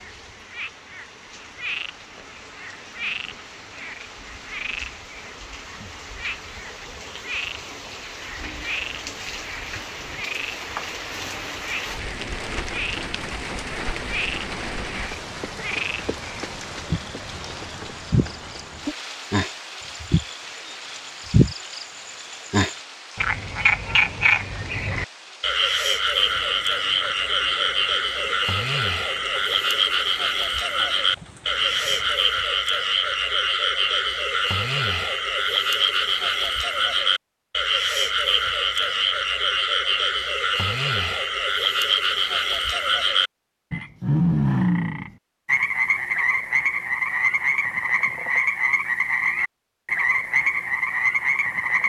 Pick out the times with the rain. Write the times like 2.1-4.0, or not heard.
0.0-32.2.